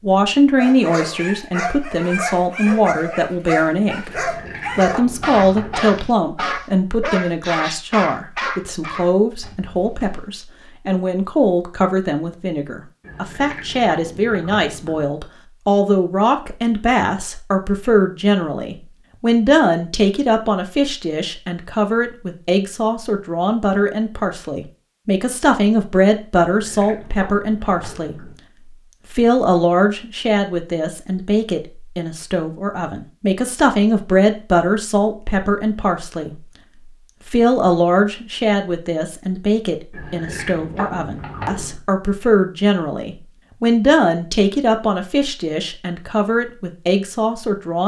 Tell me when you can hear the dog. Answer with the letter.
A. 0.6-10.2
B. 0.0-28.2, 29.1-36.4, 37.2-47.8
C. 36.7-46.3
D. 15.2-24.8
A.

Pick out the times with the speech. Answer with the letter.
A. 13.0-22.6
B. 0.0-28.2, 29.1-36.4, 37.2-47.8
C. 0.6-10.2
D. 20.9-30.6
B.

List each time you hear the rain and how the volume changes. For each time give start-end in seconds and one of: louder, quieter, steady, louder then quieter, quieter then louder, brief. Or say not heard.
not heard.